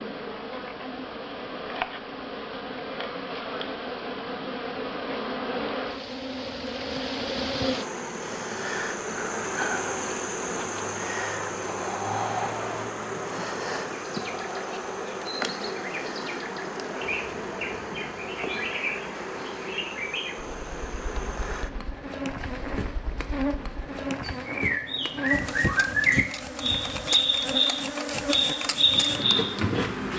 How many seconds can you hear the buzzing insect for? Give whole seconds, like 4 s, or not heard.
30 s.